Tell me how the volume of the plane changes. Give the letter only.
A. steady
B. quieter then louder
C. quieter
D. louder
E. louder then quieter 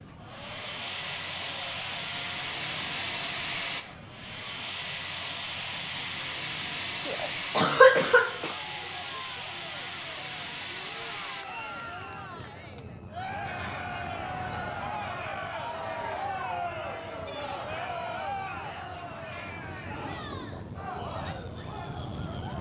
C.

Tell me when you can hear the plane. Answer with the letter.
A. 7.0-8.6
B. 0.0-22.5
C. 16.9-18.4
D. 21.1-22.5
B.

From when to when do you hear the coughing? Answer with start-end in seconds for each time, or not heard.
7.0-8.6.